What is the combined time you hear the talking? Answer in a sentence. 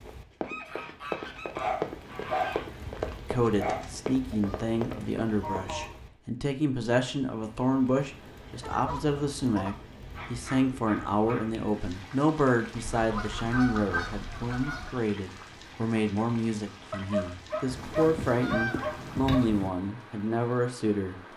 The talking can be heard for 18 seconds in total.